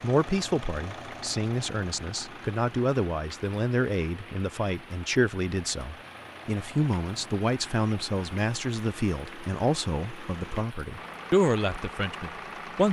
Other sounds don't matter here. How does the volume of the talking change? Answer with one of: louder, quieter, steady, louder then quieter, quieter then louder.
steady.